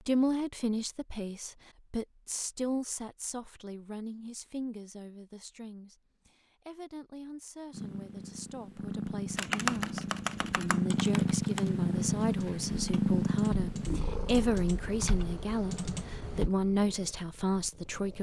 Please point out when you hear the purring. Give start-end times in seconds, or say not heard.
7.7-18.1.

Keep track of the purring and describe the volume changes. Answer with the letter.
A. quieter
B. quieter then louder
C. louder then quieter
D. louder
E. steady
C.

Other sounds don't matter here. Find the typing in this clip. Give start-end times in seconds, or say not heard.
9.3-16.5.